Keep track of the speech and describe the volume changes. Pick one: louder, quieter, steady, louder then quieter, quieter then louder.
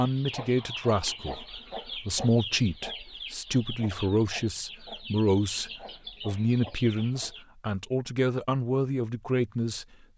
steady.